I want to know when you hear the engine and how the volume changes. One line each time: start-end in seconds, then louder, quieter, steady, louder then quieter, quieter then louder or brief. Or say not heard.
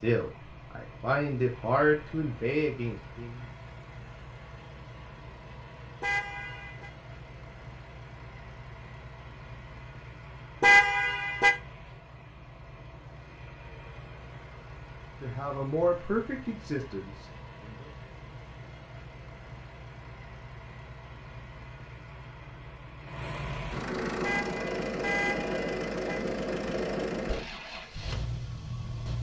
0.0-29.1 louder.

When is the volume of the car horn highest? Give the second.
11 s.